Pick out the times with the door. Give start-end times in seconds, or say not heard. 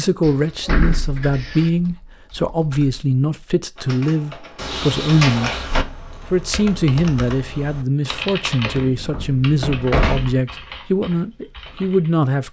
0.2-1.7, 4.5-5.8, 8.8-10.4.